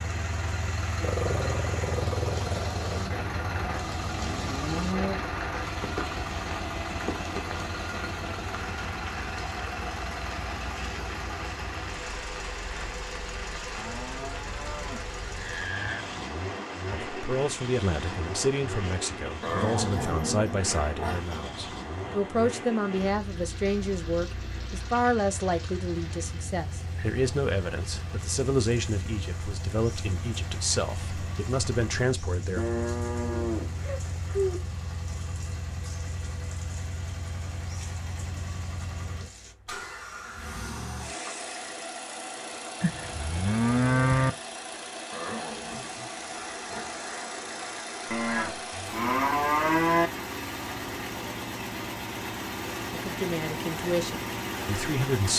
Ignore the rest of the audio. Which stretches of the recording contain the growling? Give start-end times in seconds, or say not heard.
1.0-3.0, 19.4-21.6, 45.1-47.0.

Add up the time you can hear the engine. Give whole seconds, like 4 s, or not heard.
55 s.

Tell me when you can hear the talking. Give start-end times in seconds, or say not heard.
16.9-32.6, 53.0-55.3.